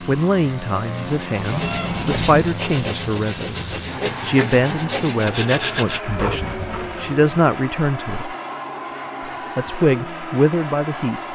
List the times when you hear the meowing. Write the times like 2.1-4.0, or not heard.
1.5-2.5.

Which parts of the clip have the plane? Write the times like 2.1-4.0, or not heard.
0.0-11.3.